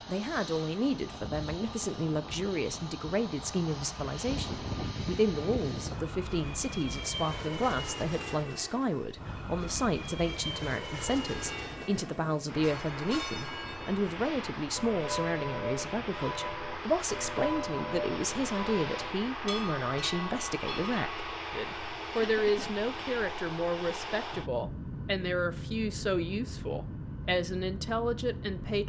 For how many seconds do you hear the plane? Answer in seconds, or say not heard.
29 s.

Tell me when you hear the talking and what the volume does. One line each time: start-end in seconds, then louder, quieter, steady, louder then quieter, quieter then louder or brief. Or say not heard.
0.1-28.8 steady.